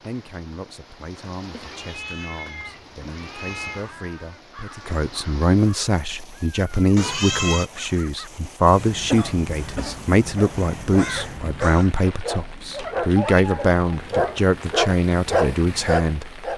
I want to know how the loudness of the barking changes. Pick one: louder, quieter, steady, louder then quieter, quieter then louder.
louder.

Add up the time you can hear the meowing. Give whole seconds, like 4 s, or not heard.
5 s.